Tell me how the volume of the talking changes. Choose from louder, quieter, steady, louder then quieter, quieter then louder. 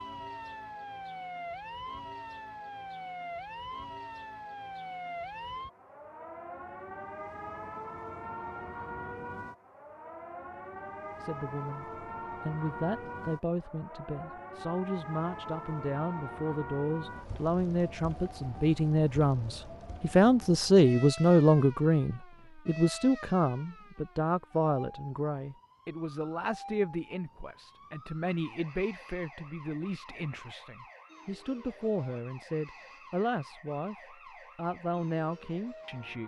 louder then quieter.